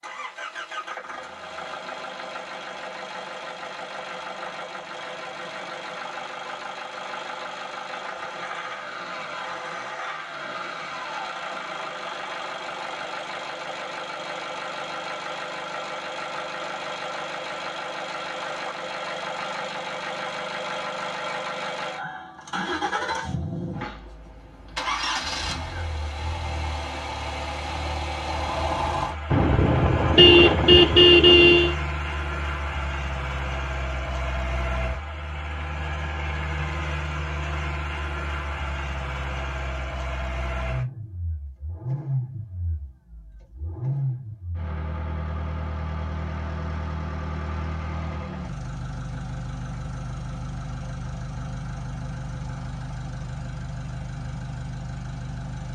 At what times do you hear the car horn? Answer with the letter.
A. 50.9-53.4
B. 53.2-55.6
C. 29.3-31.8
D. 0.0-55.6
C.